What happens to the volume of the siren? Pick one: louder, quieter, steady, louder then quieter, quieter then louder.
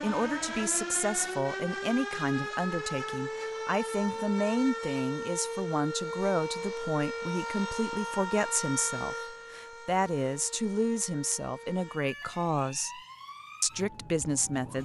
quieter.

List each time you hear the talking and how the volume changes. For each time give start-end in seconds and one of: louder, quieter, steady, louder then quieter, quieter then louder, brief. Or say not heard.
0.0-13.0 steady
13.6-14.7 brief.